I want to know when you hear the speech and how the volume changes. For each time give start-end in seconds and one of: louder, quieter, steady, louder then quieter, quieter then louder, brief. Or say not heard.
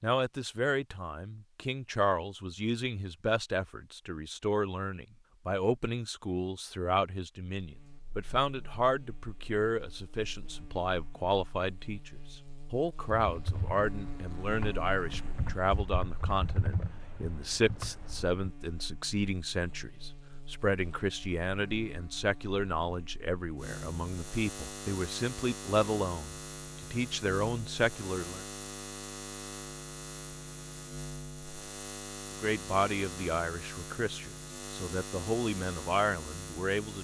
0.0-28.4 steady
32.4-36.9 quieter then louder.